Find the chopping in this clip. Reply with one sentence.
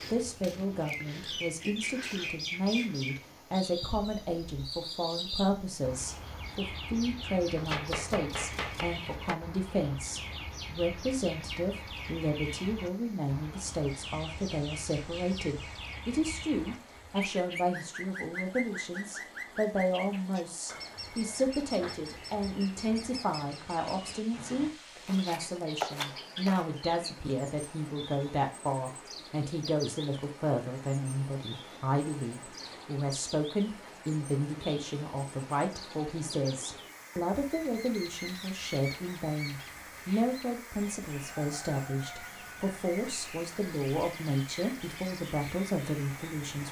You can hear the chopping from 7.5 to 9.3 s and from 24.9 to 26.6 s.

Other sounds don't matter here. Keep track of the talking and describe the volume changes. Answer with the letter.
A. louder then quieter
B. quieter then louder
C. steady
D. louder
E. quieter
C.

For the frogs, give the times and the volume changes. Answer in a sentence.
You can't hear the frogs here.